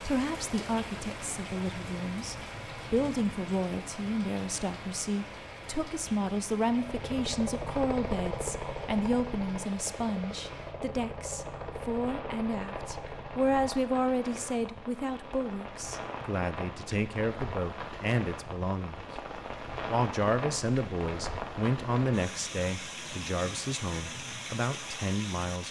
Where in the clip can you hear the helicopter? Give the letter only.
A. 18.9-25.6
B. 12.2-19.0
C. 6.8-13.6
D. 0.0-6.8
C.